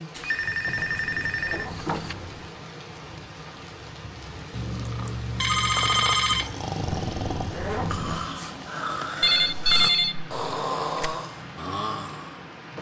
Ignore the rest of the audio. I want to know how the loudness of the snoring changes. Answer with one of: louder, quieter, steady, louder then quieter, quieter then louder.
steady.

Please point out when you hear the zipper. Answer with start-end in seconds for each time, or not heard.
0.7-2.5, 6.8-8.2.